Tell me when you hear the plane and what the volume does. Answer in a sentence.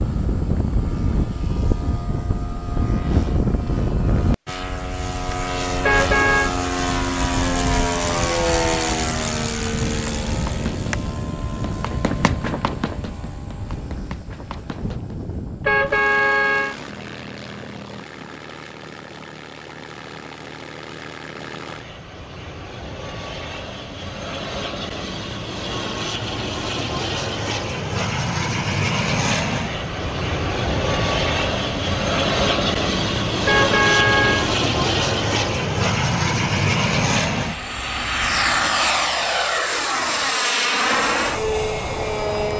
You can hear the plane from 0.0 to 42.5 s, getting quieter then louder.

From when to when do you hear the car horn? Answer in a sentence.
You can hear the car horn from 5.8 to 6.5 s, from 15.6 to 16.8 s and from 33.5 to 34.5 s.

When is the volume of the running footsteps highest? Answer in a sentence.
The volume of the running footsteps peaks at 12 seconds.